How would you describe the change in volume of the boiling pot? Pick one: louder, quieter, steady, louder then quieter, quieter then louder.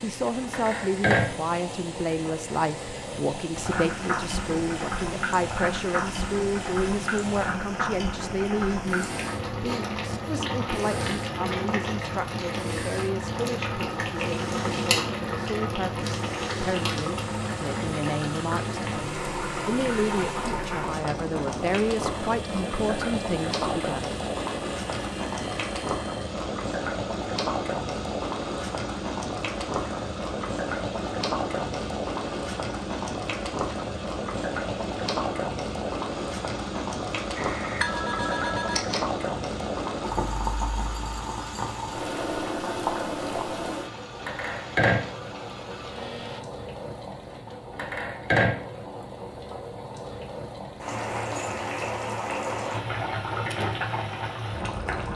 steady.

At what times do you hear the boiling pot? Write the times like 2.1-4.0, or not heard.
0.0-55.1.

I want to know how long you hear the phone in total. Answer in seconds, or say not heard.
2 s.